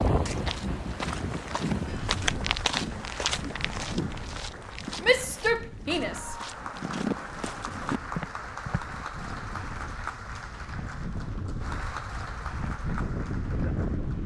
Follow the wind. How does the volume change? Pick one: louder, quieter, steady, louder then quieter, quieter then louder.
quieter then louder.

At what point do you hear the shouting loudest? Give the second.
5 s.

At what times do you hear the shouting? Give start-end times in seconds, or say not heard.
5.0-6.8.